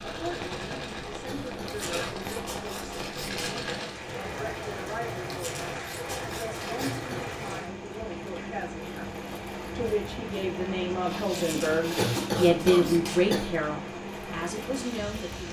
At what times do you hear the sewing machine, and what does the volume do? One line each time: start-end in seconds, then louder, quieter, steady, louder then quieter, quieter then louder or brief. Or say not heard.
0.0-15.4 steady.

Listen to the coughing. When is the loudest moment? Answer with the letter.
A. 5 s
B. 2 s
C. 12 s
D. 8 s
C.